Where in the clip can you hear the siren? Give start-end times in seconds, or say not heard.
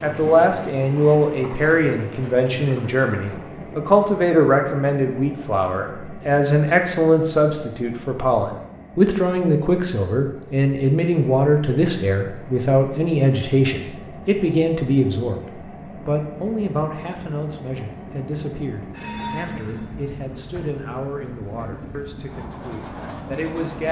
not heard.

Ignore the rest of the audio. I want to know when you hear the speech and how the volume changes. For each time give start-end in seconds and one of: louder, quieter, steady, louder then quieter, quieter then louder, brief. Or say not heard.
0.0-15.4 steady
16.1-23.8 quieter.